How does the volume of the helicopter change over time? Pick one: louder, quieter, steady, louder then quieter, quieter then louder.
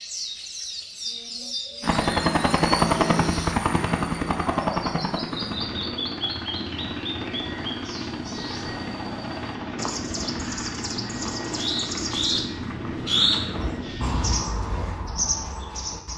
quieter.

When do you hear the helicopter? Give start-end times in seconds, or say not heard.
1.8-14.4.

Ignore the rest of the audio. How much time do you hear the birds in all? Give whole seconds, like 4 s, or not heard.
16 s.